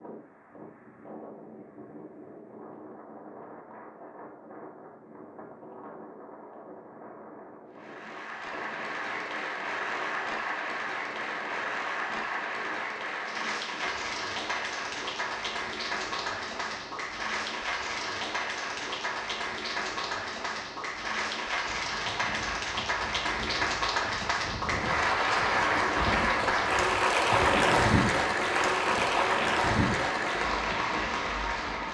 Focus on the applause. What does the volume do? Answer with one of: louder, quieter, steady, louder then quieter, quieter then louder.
louder.